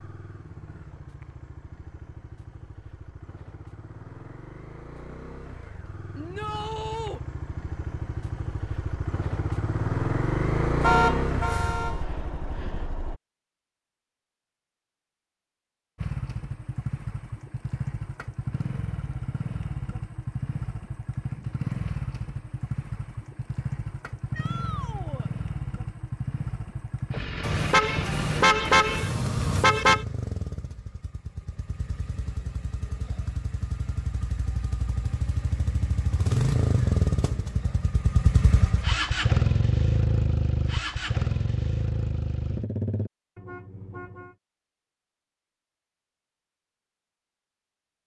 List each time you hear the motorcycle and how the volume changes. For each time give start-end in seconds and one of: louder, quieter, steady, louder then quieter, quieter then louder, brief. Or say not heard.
0.0-13.2 louder
15.9-43.1 louder.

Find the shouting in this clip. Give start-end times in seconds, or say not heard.
6.2-7.2, 24.3-25.3.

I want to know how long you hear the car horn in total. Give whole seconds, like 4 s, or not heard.
5 s.